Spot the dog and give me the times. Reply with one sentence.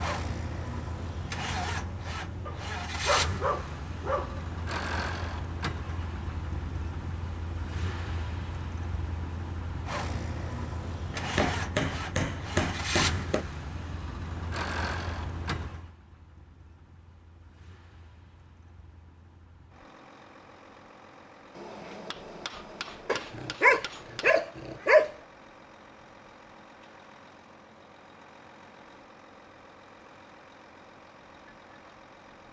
The dog can be heard from 2.5 to 4.4 s and from 23.1 to 25.1 s.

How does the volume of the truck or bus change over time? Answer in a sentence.
The volume of the truck or bus goes down.